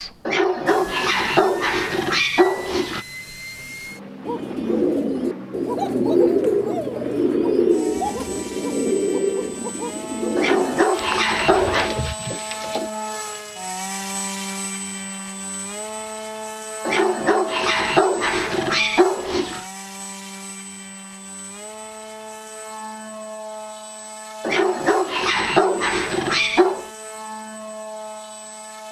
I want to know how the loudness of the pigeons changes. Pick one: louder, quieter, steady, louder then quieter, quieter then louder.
quieter.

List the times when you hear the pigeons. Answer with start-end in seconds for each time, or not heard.
4.2-12.9.